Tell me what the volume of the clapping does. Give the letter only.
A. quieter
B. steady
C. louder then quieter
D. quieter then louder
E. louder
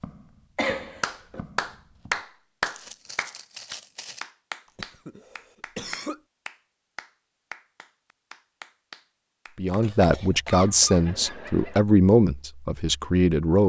A.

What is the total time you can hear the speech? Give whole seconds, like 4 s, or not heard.
4 s.